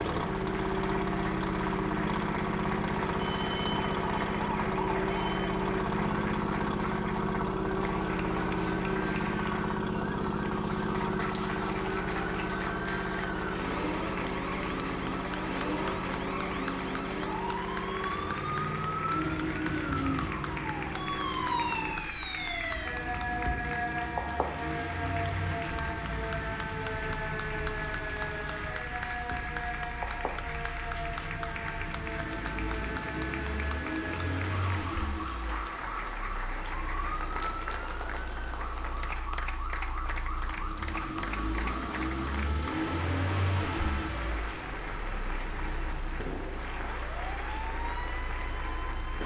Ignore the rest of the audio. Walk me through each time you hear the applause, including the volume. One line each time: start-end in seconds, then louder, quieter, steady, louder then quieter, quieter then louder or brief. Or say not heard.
0.0-49.2 steady.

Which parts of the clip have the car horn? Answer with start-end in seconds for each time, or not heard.
not heard.